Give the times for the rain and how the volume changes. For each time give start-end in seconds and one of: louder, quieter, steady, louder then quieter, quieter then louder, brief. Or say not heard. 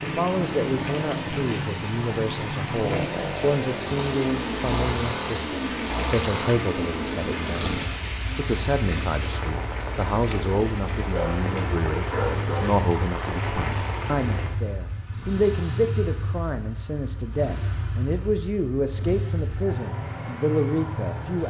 0.0-14.6 steady.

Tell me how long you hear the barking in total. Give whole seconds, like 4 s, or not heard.
2 s.